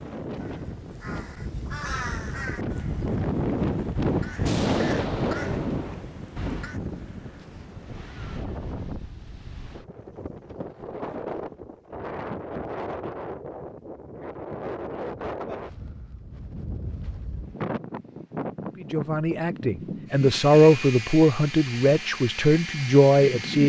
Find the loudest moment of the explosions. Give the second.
5 s.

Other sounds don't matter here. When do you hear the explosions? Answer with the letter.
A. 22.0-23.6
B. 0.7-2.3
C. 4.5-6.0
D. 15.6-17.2
C.